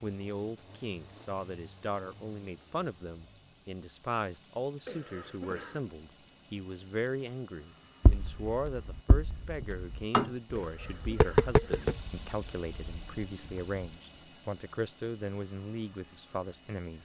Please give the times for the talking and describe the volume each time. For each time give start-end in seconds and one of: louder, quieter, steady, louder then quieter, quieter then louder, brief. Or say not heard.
0.0-16.9 steady.